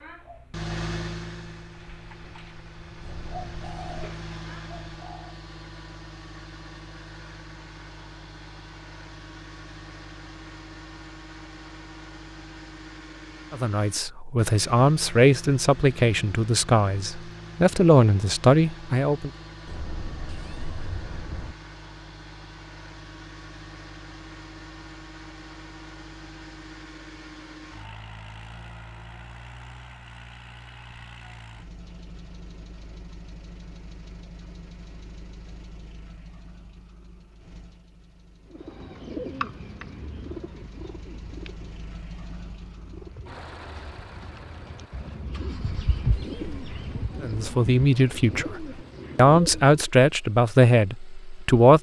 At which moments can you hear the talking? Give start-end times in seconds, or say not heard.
13.5-19.3, 47.2-51.7.